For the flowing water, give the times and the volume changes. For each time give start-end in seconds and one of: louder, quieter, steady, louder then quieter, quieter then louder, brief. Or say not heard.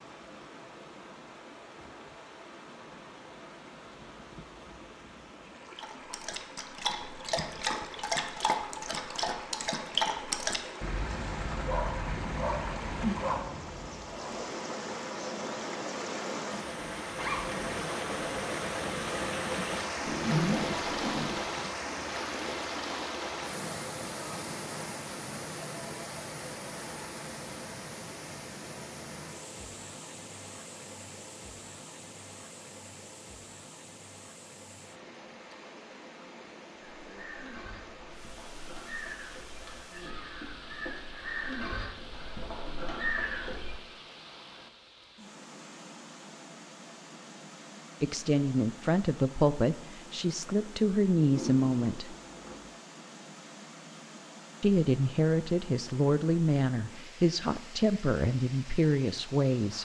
0.0-59.7 louder then quieter.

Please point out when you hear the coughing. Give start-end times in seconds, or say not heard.
not heard.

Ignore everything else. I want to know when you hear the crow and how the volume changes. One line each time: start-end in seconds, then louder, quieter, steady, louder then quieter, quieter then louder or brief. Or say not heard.
37.0-43.8 louder.